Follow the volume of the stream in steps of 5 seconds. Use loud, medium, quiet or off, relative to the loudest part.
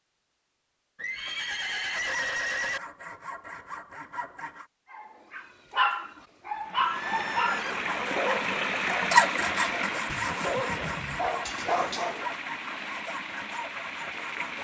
off, loud, medium.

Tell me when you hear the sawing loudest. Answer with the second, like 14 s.
9 s.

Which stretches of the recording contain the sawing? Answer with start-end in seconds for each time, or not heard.
1.9-4.7, 7.4-14.6.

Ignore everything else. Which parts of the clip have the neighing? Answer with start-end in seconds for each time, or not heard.
0.9-2.8, 6.8-7.9, 10.1-11.3.